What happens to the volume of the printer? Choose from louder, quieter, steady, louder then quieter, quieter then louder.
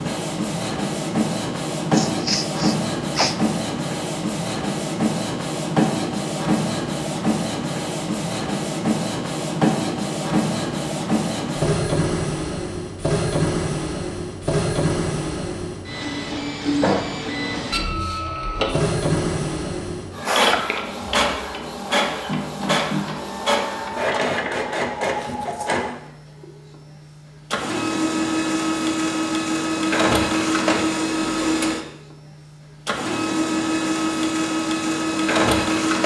steady.